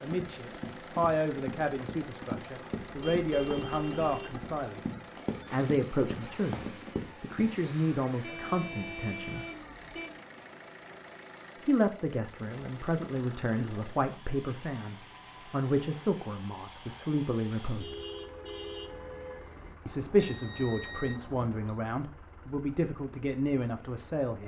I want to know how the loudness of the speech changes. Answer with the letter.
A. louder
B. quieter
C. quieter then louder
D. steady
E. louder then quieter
D.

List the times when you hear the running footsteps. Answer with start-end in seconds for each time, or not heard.
0.0-7.5.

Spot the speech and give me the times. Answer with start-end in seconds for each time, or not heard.
0.0-4.8, 5.5-9.4, 11.6-18.0, 19.9-24.4.